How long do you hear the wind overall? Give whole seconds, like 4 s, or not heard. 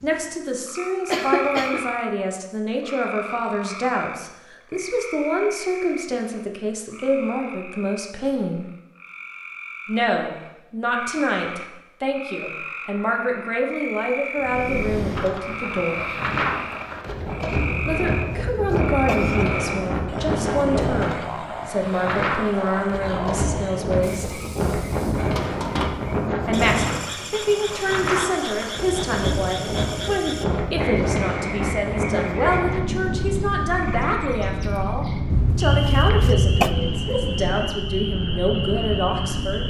25 s.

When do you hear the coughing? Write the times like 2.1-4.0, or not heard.
1.1-1.9, 17.8-19.6, 35.3-36.7.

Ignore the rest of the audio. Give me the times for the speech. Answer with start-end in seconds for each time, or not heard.
0.0-8.7, 9.8-16.1, 17.9-24.4, 26.4-39.6.